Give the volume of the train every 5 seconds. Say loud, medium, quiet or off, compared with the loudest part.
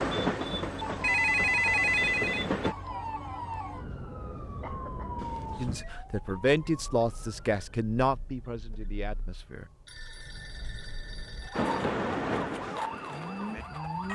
loud, off, loud.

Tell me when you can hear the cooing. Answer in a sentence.
You can't hear the cooing here.